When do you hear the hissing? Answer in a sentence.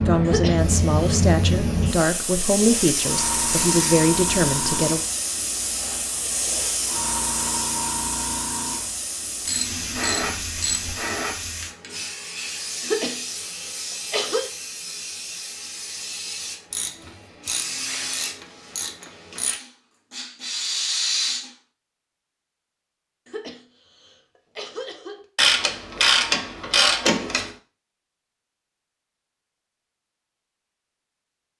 You can hear the hissing from 0.0 to 21.5 s.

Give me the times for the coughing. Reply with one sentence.
The coughing can be heard from 0.2 to 1.1 s, from 12.8 to 14.5 s and from 23.2 to 25.2 s.